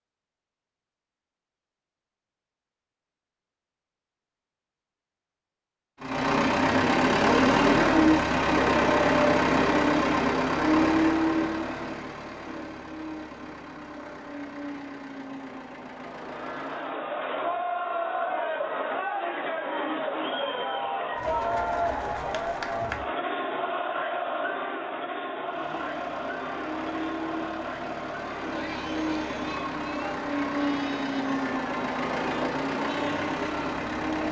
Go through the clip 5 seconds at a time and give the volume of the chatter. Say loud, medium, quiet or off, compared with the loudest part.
off, off, off, loud, loud, medium, medium.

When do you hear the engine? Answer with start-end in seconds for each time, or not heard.
6.0-16.9, 25.4-34.2.